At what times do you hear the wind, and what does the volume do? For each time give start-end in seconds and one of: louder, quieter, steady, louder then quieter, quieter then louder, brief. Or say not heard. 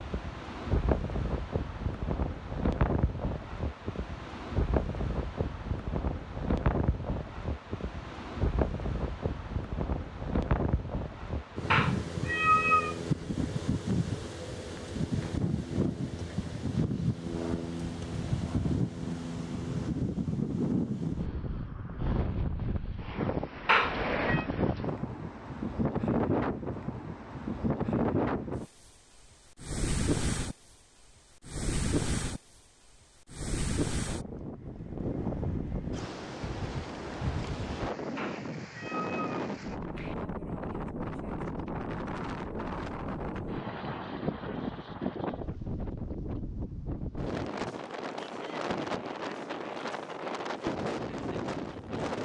0.0-52.1 steady.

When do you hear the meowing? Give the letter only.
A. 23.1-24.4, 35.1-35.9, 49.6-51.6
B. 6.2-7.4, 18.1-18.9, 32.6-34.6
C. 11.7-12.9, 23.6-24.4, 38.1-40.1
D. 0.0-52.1
C.